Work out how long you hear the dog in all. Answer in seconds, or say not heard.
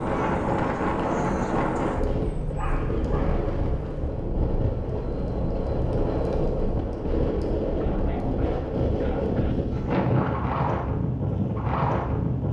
4 s.